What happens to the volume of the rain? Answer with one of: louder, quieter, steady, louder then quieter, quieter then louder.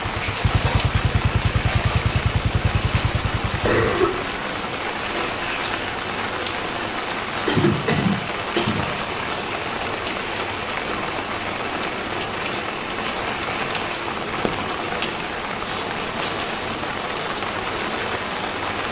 steady.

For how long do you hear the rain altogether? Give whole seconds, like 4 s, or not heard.
19 s.